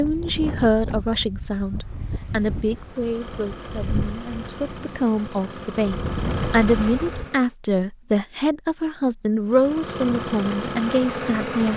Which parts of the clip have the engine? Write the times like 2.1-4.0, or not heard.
2.8-7.5, 9.4-11.7.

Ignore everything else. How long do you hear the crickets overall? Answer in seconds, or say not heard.
not heard.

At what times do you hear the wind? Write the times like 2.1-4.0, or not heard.
0.0-7.3.